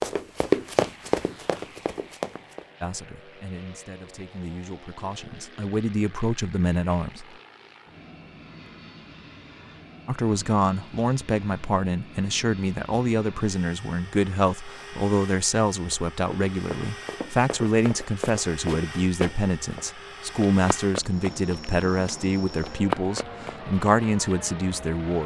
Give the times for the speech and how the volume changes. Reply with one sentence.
You can hear the speech from 2.8 to 7.2 s, getting louder; and from 10.1 to 25.2 s, at a steady volume.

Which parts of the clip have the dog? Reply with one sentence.
You can't hear the dog here.